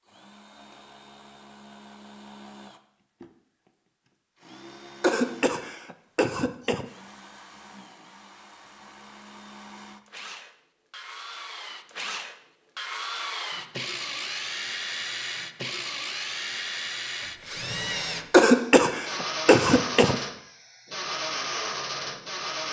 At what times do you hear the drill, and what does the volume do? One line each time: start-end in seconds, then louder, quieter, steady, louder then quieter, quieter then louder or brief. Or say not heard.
0.0-22.6 louder.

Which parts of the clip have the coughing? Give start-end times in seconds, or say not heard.
5.0-6.8, 18.3-20.2.